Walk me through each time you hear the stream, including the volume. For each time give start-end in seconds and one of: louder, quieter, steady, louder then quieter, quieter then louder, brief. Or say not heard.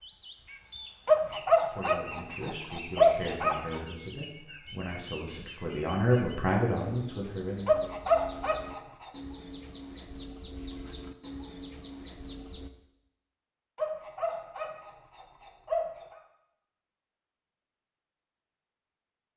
not heard.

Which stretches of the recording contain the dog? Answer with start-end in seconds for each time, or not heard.
1.1-3.8, 7.7-9.1, 13.8-16.1.